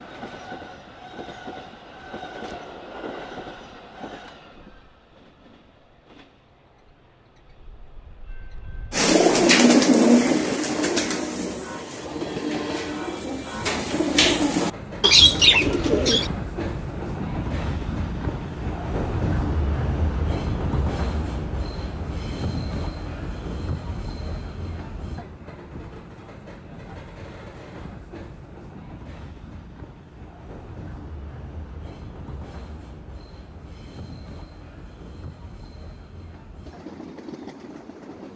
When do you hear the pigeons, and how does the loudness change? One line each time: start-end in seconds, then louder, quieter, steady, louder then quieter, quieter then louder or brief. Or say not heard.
8.9-16.3 quieter then louder.